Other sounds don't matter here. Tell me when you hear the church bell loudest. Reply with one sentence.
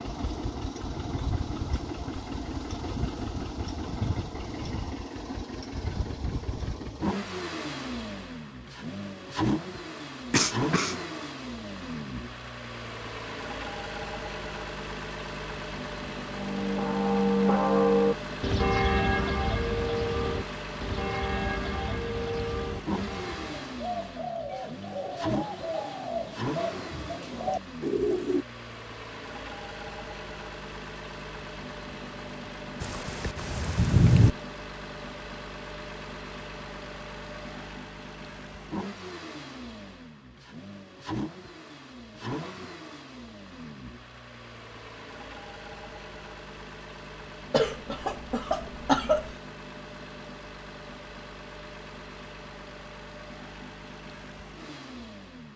The loudest moment of the church bell is at 18 seconds.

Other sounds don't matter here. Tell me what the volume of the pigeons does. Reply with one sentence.
The loudness of the pigeons goes up.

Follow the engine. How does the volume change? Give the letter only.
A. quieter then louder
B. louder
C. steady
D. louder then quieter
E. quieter
E.